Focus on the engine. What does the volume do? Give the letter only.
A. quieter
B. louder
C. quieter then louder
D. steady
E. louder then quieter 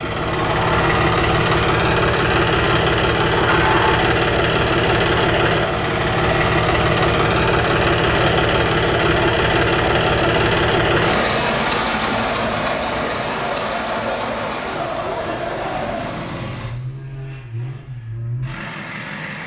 A.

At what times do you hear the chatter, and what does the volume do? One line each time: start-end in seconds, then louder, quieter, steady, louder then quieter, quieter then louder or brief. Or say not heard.
0.1-16.4 steady.